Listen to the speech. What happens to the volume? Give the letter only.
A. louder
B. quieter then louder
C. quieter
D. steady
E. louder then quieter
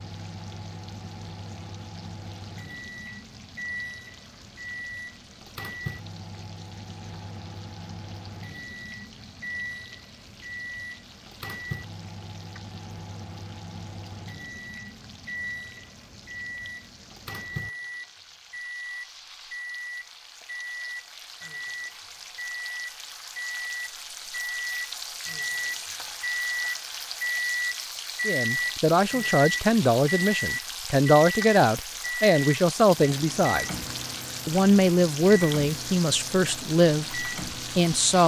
D.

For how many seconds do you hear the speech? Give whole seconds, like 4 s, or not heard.
9 s.